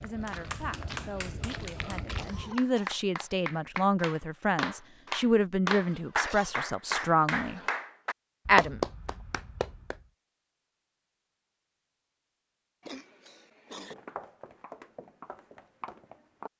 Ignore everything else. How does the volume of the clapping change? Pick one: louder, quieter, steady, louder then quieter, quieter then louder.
louder.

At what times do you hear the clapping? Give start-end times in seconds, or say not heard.
0.2-10.0.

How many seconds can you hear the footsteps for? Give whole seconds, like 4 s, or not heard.
5 s.